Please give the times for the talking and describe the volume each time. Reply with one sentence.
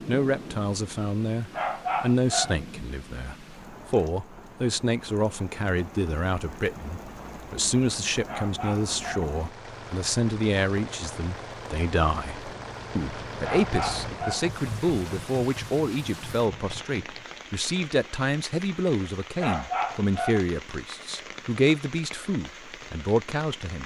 The talking can be heard from 0.1 to 23.8 s, at a steady volume.